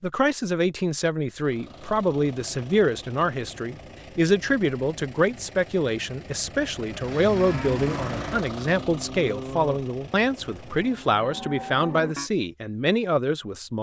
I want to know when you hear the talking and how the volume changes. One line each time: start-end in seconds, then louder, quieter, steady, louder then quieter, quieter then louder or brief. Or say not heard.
0.0-13.7 steady.